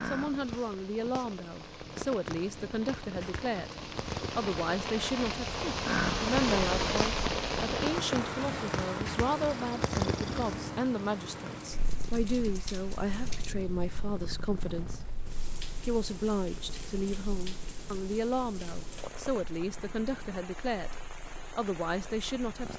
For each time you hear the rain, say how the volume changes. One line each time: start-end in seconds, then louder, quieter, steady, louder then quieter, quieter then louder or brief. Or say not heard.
0.0-22.7 louder then quieter.